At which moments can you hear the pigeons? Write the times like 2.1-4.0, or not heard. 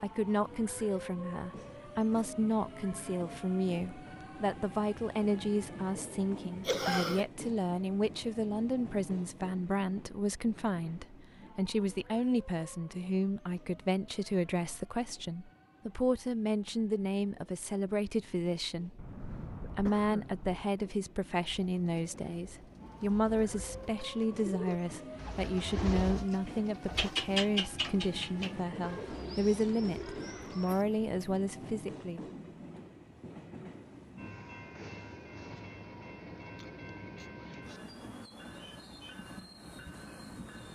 21.4-30.9.